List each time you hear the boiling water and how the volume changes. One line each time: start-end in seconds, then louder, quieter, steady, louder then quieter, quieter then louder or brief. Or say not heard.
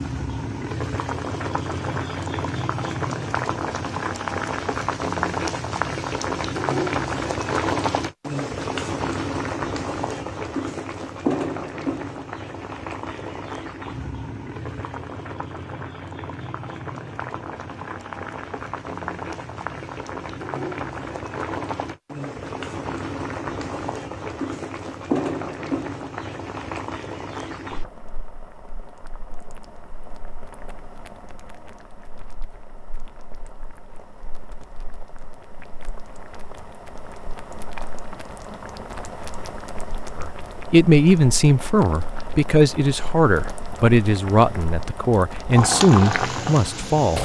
0.0-47.2 quieter then louder.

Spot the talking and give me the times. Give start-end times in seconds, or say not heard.
40.1-47.2.